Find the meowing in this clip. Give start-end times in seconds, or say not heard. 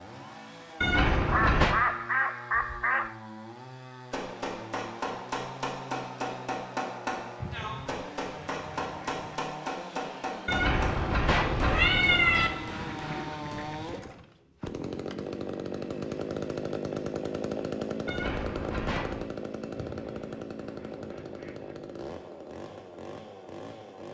0.8-1.8, 10.4-12.5, 18.1-19.2.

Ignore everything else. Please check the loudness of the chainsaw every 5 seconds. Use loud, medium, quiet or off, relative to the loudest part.
medium, medium, medium, loud, medium.